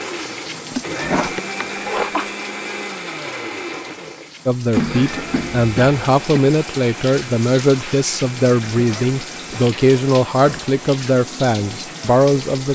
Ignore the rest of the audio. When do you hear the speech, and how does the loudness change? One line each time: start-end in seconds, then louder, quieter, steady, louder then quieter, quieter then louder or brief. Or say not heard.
4.5-12.7 steady.